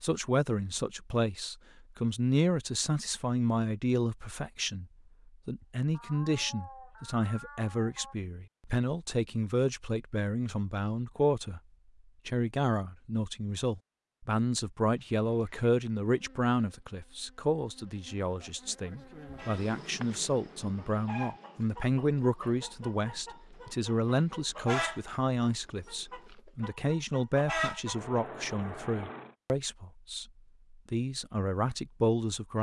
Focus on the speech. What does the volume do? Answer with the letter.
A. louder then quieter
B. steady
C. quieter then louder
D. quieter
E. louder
B.